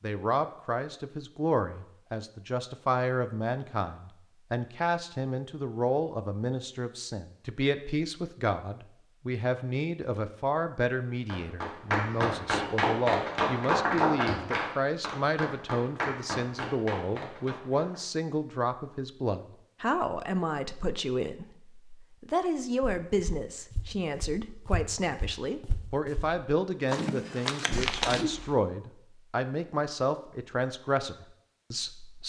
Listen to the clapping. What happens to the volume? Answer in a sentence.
The volume of the clapping goes down.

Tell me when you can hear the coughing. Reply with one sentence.
You can hear the coughing from 27.7 to 28.6 s.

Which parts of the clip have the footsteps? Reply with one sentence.
You can hear the footsteps from 22.8 to 28.2 s.